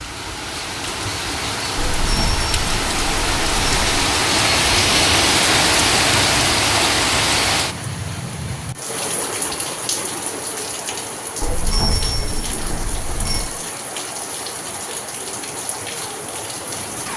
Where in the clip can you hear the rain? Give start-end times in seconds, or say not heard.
0.0-17.1.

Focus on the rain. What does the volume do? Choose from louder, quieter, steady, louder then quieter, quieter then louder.
louder then quieter.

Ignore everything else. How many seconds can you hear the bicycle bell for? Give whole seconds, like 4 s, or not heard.
4 s.